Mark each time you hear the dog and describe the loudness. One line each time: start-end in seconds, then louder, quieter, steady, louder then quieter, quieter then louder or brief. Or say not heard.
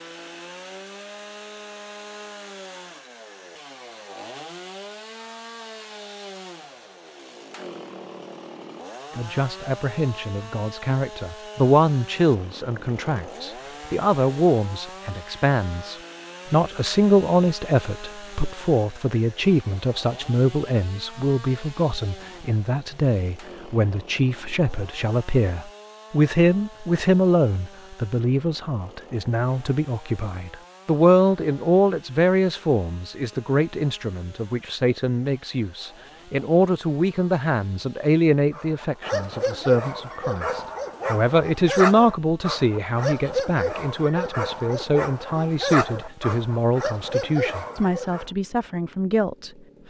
38.5-48.3 steady.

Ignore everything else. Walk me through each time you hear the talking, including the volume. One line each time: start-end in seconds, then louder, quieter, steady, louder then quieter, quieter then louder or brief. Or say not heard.
9.2-49.8 steady.